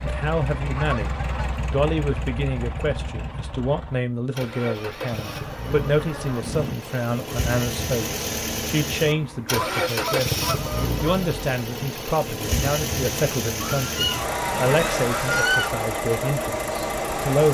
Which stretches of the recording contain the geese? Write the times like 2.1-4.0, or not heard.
0.1-1.6, 4.8-6.8, 9.1-11.0, 13.6-15.8.